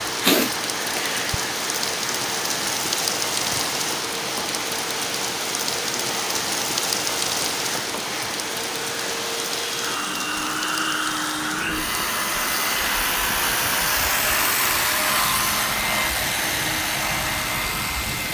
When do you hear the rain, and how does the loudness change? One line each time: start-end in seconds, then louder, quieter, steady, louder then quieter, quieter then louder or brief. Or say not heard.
0.0-18.2 quieter.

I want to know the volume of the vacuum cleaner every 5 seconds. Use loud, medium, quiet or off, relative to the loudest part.
medium, medium, loud, loud.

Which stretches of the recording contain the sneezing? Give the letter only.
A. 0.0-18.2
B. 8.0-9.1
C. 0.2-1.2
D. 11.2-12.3
C.